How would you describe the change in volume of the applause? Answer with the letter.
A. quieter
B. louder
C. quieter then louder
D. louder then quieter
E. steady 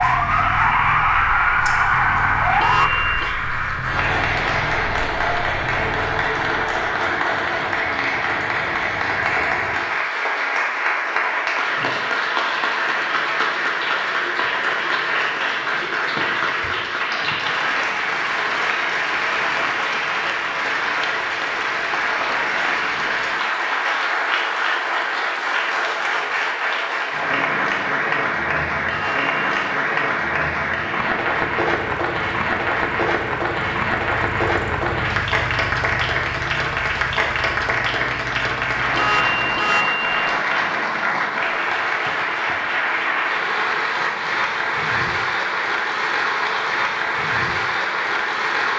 E.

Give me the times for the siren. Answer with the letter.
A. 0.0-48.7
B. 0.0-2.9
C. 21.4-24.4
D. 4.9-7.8
B.